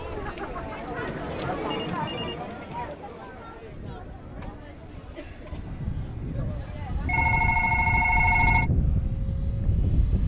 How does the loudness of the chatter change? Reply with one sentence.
The volume of the chatter goes down.